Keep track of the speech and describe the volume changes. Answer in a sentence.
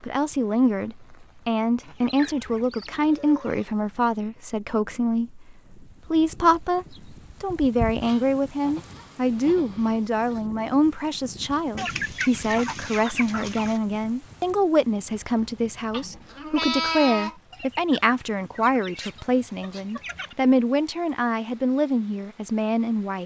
The volume of the speech stays about the same.